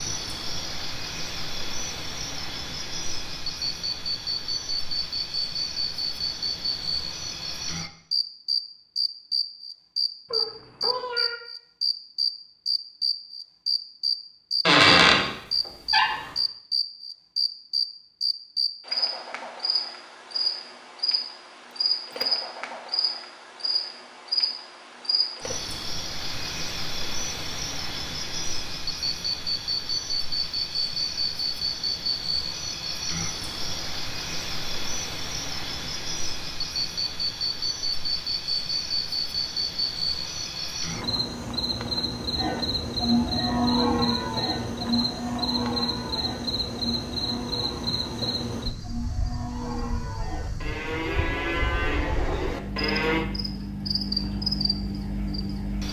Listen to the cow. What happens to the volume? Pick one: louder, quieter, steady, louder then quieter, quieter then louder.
quieter then louder.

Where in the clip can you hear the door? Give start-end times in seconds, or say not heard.
14.7-16.3.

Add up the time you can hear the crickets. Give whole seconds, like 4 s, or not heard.
56 s.